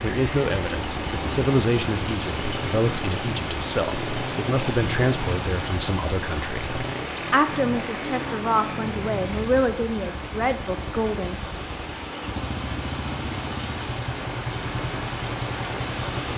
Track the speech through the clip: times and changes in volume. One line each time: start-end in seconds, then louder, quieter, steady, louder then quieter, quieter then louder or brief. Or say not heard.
0.0-11.4 steady.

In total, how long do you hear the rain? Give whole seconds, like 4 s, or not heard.
16 s.